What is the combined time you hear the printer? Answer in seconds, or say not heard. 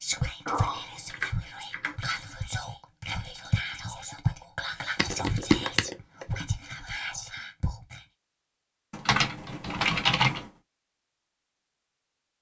not heard.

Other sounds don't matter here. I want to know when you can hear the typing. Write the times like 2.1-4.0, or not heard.
0.5-2.2, 5.0-6.2, 8.9-10.5.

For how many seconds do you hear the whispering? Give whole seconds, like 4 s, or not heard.
8 s.